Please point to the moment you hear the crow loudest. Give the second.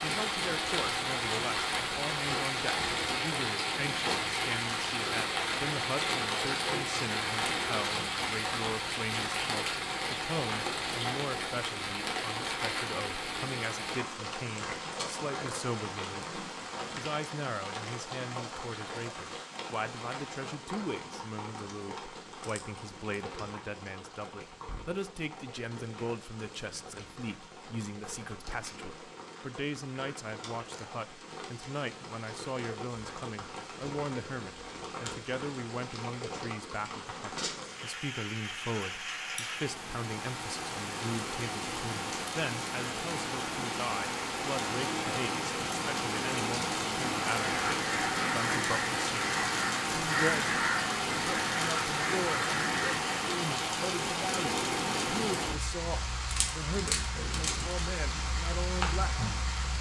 50 s.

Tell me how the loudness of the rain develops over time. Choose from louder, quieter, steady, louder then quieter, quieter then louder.
quieter then louder.